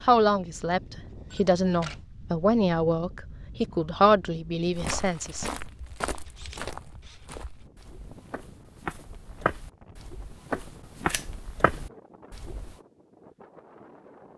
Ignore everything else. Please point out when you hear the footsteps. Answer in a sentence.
You can hear the footsteps from 4.7 to 12.8 s.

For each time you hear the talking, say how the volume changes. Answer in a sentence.
You can hear the talking from 0.1 to 5.5 s, getting louder then quieter.